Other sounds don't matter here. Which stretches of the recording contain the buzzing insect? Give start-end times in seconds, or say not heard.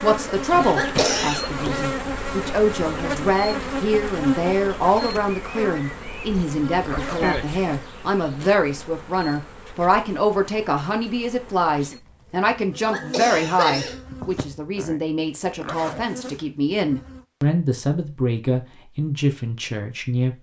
0.0-17.2.